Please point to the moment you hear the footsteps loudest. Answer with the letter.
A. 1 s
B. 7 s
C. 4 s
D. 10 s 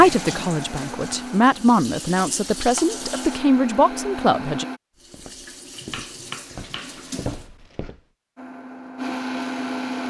B.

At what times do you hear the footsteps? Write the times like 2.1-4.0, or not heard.
5.0-8.1.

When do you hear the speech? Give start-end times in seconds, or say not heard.
0.0-4.7.